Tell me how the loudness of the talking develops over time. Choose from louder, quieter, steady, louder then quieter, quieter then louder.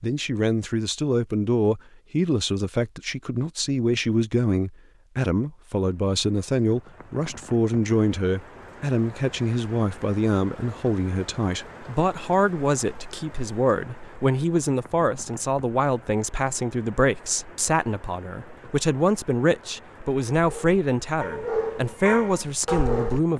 steady.